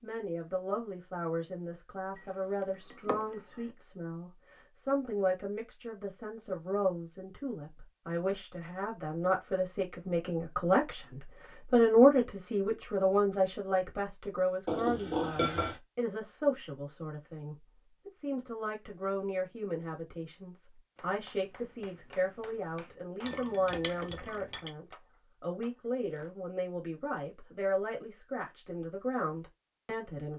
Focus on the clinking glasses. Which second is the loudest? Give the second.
15 s.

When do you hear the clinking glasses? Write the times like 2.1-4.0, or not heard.
2.1-3.6, 14.7-15.8, 23.2-24.7.